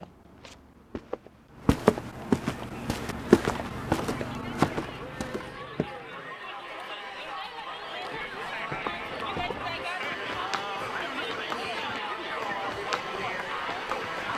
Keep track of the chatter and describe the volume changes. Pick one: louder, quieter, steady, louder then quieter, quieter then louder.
louder.